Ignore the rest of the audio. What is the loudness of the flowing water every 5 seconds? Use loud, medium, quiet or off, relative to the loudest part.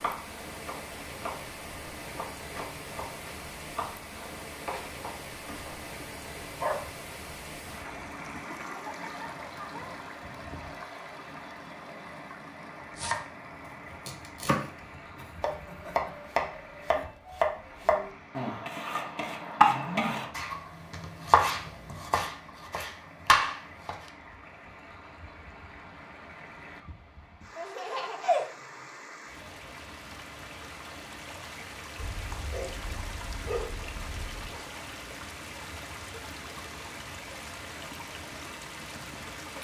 loud, loud, loud, medium, medium, medium, loud, loud.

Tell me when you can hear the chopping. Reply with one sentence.
The chopping can be heard from 0.0 to 5.7 s and from 12.9 to 24.1 s.